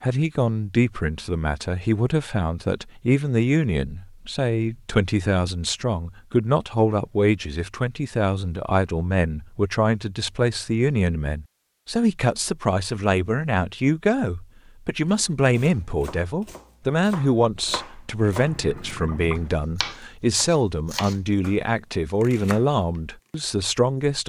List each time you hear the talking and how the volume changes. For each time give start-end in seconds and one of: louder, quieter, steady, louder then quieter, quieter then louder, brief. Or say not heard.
0.0-24.2 steady.